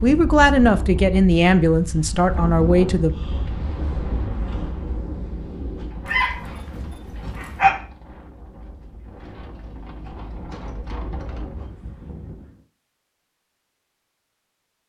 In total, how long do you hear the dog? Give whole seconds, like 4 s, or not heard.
2 s.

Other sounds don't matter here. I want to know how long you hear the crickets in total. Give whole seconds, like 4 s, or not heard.
not heard.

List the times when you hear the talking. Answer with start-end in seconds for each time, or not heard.
0.0-3.1.